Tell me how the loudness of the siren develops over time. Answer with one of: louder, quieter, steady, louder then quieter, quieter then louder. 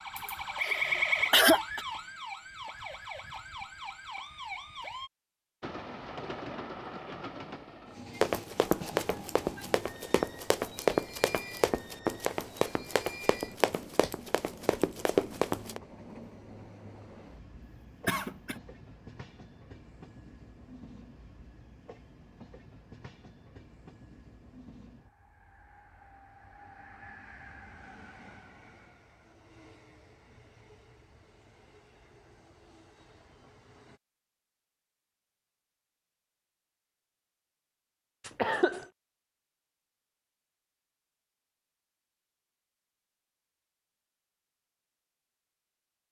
quieter.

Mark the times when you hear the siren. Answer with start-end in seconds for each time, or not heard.
0.0-5.1.